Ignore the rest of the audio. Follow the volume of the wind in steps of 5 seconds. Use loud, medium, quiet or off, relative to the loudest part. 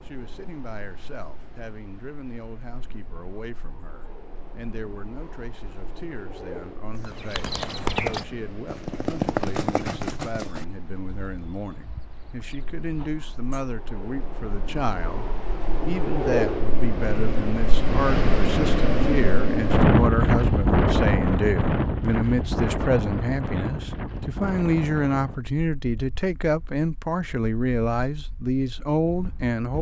quiet, quiet, quiet, loud, loud, quiet.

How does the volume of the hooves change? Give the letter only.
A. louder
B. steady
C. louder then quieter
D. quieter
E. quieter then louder
D.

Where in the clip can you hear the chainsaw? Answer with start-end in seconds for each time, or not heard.
not heard.